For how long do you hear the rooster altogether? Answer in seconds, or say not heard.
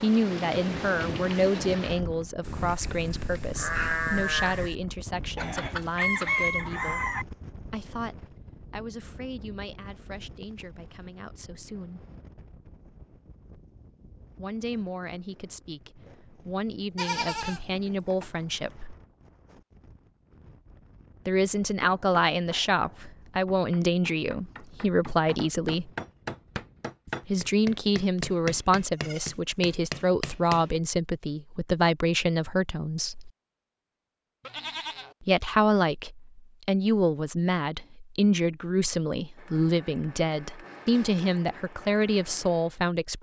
2 s.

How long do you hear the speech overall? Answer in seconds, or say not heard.
35 s.